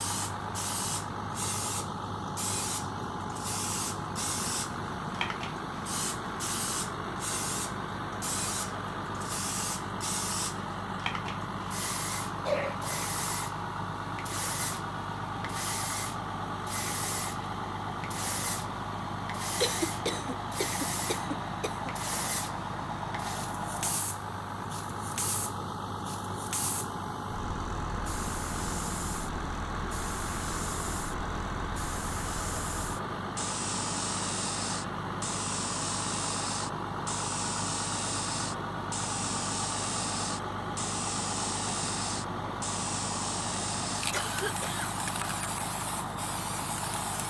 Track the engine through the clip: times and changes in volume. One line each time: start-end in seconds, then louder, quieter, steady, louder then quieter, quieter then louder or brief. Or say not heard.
0.0-47.2 steady.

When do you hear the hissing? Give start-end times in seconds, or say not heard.
0.0-47.2.